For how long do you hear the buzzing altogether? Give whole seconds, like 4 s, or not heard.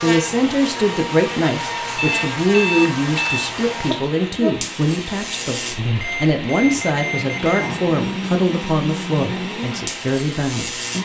11 s.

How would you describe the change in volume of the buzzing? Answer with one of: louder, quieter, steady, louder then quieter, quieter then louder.
steady.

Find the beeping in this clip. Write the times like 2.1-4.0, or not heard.
1.9-3.5, 6.0-7.8.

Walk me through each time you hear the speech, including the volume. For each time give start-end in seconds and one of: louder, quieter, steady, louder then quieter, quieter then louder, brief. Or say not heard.
0.0-10.7 steady.